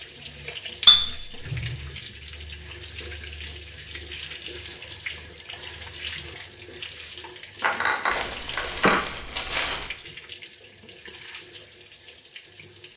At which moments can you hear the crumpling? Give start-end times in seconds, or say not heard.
8.1-9.9.